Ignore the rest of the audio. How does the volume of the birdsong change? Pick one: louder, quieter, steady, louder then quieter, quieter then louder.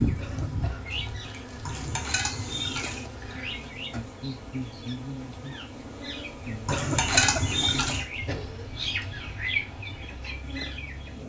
quieter then louder.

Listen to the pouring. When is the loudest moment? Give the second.
7 s.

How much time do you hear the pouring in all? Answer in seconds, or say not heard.
3 s.